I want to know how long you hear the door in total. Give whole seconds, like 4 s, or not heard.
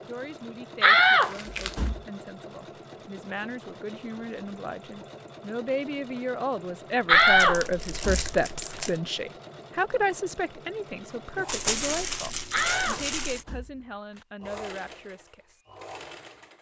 5 s.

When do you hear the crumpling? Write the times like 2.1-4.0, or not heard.
1.2-1.9, 7.2-9.0, 11.4-13.4.